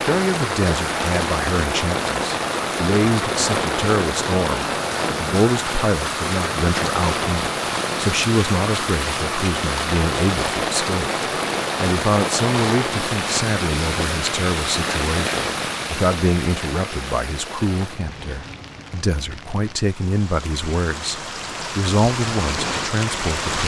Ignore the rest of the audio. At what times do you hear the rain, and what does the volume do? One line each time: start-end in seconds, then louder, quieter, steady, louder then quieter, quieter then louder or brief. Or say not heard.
0.0-23.6 quieter.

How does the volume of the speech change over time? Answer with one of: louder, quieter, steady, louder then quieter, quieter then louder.
steady.